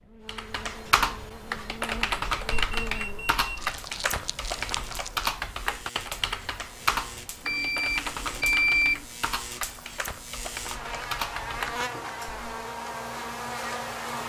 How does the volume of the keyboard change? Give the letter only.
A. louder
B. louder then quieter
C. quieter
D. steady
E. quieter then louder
C.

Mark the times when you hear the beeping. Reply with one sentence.
The beeping can be heard from 2.5 to 3.8 s and from 7.5 to 9.0 s.